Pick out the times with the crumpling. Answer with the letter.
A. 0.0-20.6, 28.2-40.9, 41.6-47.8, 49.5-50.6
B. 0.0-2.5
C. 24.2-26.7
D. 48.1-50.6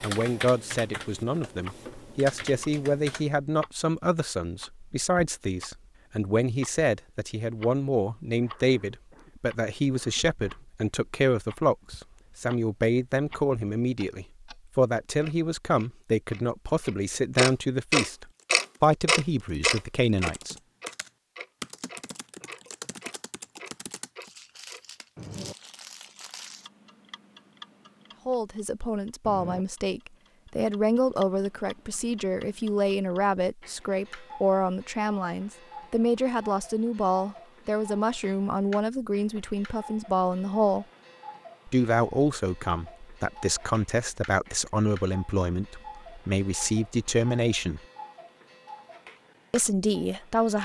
C.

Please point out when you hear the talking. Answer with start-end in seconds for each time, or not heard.
0.0-20.6, 28.2-40.9, 41.6-47.8, 49.5-50.6.